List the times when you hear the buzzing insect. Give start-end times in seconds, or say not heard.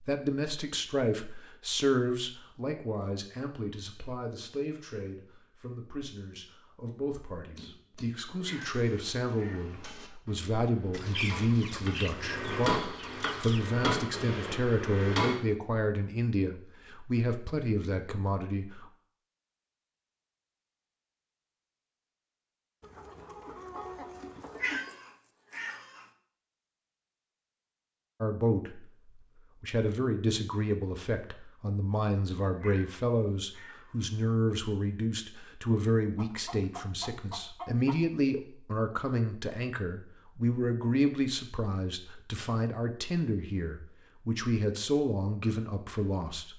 not heard.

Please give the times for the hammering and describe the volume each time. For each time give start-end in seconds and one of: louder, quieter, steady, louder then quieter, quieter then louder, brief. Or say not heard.
7.5-15.4 louder.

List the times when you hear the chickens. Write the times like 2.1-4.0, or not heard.
10.9-13.8, 22.8-24.8, 36.1-38.1.